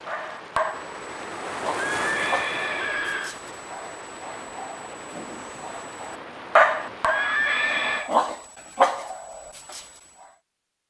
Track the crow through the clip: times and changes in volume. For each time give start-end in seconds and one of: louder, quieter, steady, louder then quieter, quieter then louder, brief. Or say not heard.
not heard.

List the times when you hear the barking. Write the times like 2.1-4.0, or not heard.
0.1-9.8.